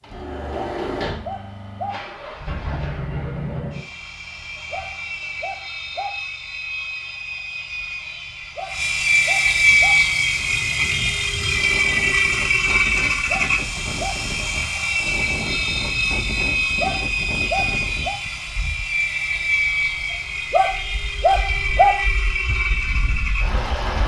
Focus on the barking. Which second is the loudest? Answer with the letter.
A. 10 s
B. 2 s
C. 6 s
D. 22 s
D.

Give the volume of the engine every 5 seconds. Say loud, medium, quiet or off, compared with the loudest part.
medium, loud, loud, loud, medium.